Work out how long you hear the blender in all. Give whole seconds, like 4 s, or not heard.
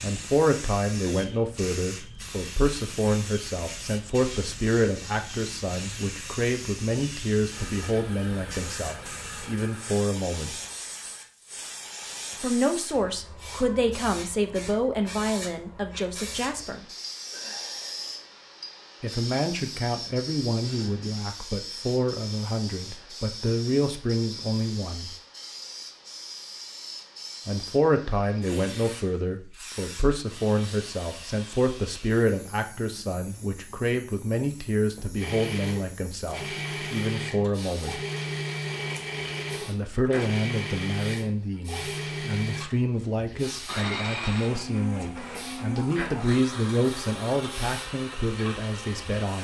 17 s.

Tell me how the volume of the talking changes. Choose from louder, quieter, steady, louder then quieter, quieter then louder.
steady.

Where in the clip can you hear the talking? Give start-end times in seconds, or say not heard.
0.0-10.6, 12.4-16.9, 19.0-25.1, 27.4-38.0, 39.6-49.3.